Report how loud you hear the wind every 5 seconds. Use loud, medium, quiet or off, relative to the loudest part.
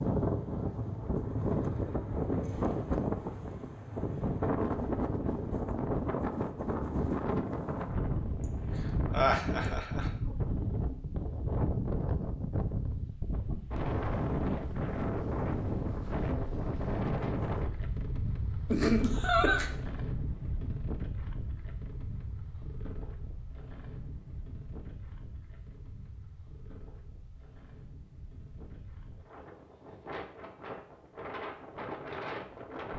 loud, loud, loud, loud, medium, quiet, medium.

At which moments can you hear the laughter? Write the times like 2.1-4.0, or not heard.
9.1-10.1, 18.7-19.7.